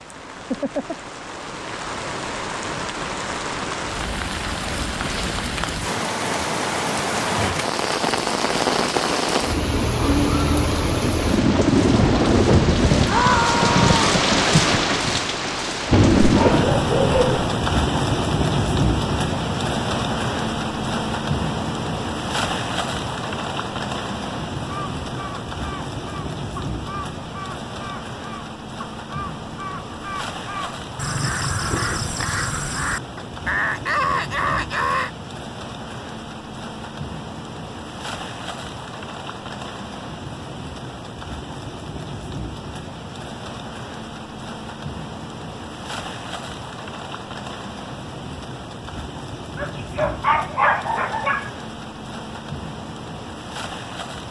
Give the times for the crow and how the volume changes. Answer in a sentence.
The crow can be heard from 24.6 to 35.1 s, getting louder.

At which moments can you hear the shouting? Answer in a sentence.
The shouting can be heard from 13.1 to 14.2 s.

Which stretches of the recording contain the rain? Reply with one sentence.
The rain can be heard from 0.0 to 54.2 s.